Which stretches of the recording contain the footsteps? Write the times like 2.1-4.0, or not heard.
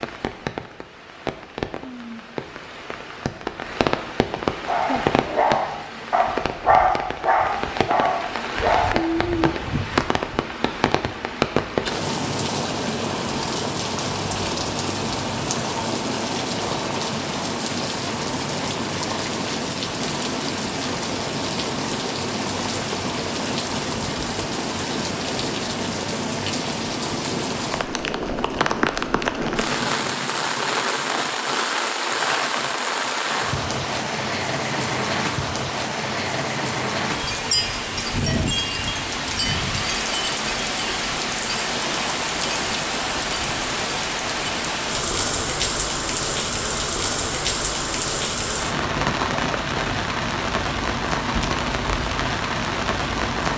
not heard.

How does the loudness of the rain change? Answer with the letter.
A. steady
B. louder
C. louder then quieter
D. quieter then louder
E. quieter
A.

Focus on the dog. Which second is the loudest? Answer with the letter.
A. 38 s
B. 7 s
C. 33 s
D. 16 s
B.